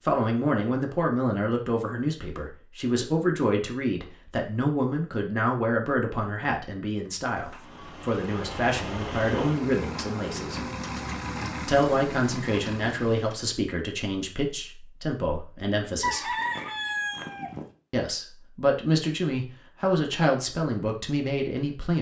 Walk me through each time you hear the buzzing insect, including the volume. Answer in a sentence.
You can't hear the buzzing insect here.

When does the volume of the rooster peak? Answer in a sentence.
The volume of the rooster peaks at 16 seconds.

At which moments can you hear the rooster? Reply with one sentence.
The rooster can be heard from 16.0 to 17.6 s.